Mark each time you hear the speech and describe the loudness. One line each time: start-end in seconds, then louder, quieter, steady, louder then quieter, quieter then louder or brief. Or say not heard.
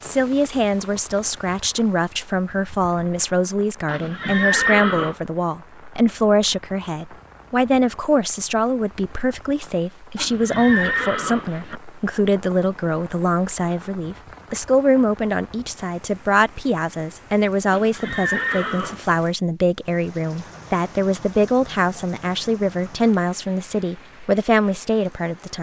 0.0-25.5 steady.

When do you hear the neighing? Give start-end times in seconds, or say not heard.
3.9-5.2, 10.2-11.8, 17.7-19.1.